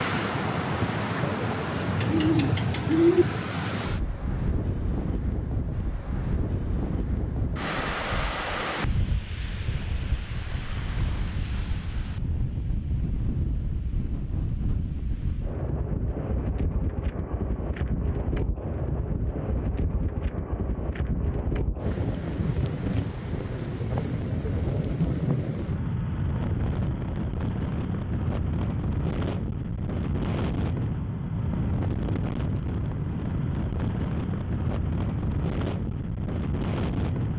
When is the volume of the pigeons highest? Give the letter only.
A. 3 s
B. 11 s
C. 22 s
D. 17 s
A.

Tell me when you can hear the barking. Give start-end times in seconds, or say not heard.
not heard.